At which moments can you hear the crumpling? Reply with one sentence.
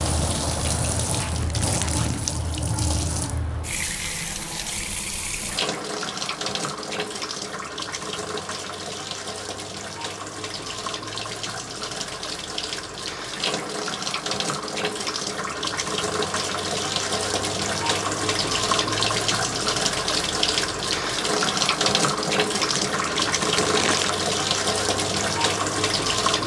You can hear the crumpling from 1.3 to 2.2 s and from 22.2 to 24.1 s.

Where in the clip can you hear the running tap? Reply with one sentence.
The running tap can be heard from 0.0 to 26.4 s.